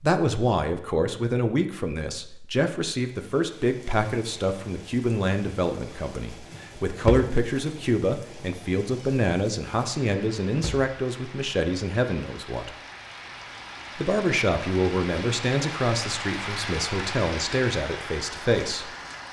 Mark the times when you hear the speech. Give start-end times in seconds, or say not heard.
0.0-12.7, 13.9-18.9.